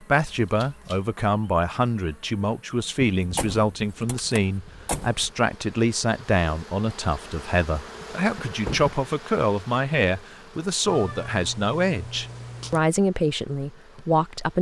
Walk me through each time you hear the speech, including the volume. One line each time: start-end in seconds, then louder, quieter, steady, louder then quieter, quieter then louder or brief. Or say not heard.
0.1-14.5 steady.